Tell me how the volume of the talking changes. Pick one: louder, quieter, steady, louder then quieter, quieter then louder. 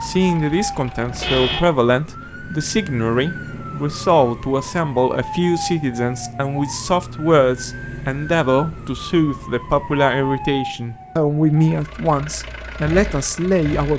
steady.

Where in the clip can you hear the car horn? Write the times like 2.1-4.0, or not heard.
1.1-1.7.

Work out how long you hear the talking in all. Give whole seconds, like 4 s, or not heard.
14 s.